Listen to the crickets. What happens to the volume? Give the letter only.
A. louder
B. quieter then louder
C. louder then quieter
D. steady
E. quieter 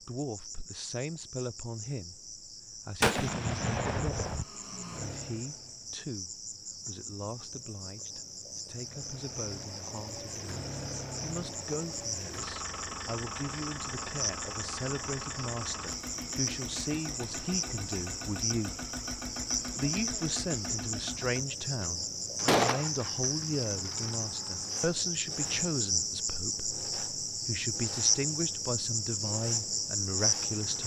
A.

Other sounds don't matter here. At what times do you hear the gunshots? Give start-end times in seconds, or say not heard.
3.0-4.5, 22.4-22.9.